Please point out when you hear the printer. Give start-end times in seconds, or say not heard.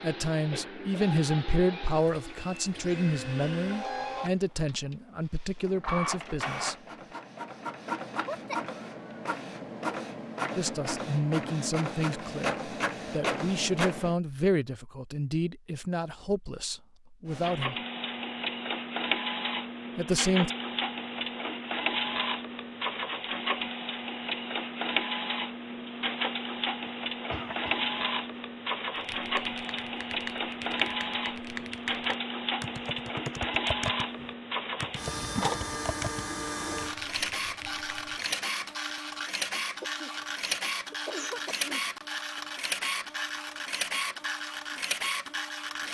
0.0-14.2, 17.2-45.8.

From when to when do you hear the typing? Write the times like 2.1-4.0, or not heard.
28.9-38.4.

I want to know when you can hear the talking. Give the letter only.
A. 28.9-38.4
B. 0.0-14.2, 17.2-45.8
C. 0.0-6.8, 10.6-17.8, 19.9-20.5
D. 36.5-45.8
C.